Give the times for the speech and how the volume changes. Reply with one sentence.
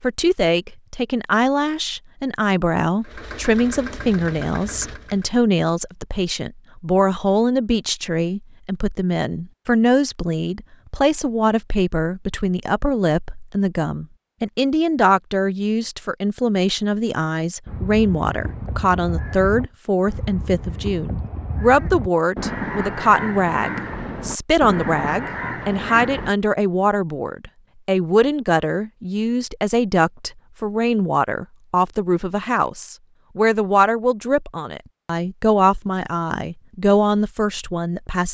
You can hear the speech from 0.0 to 38.2 s, at a steady volume.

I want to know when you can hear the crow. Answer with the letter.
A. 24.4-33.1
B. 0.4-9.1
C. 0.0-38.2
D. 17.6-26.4
D.